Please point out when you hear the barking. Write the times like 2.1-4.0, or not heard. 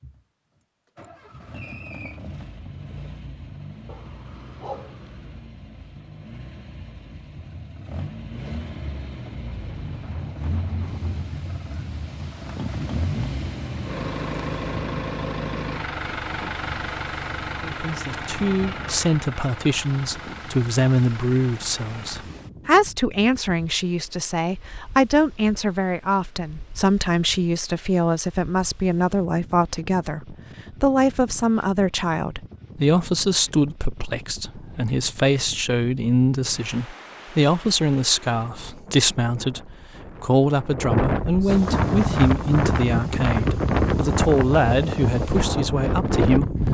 3.9-5.5.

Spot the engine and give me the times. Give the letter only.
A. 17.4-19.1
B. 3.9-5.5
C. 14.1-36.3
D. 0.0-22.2
D.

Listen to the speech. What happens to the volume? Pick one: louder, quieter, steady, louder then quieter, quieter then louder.
steady.